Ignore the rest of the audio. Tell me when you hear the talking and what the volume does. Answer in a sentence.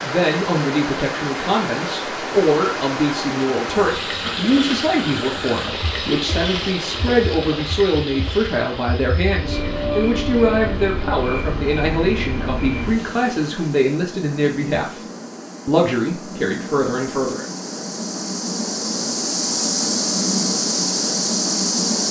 The talking can be heard from 0.0 to 15.0 s, at a steady volume; and briefly from 15.7 to 17.4 s.